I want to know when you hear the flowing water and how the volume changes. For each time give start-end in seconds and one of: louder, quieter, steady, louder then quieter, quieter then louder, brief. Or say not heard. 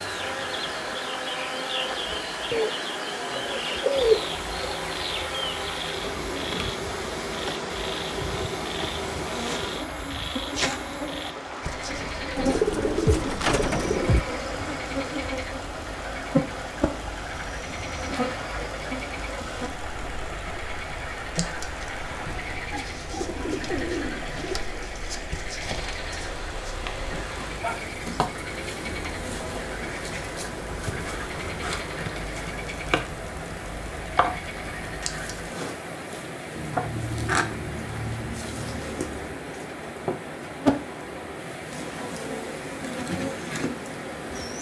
0.0-44.5 steady.